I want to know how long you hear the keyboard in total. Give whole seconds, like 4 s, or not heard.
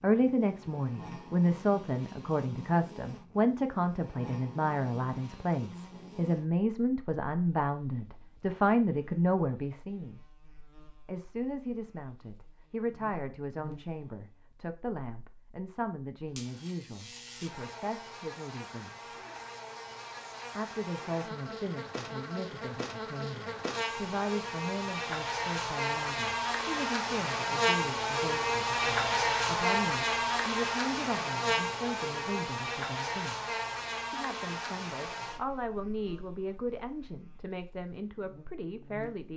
not heard.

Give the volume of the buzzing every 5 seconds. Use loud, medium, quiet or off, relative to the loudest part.
quiet, quiet, quiet, quiet, medium, loud, loud, quiet.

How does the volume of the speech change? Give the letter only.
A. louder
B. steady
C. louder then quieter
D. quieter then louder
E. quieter
E.